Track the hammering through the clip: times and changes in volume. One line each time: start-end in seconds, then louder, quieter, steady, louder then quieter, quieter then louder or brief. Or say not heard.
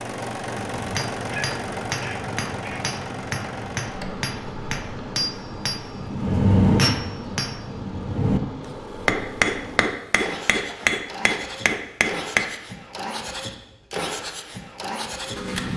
0.8-12.4 louder.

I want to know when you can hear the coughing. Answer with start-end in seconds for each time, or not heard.
1.3-2.9.